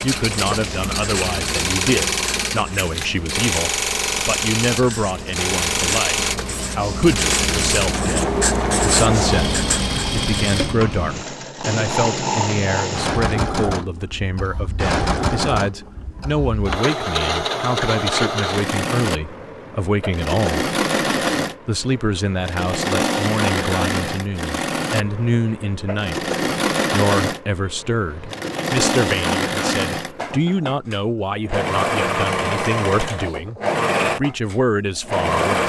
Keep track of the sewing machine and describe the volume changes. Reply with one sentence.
The volume of the sewing machine stays about the same.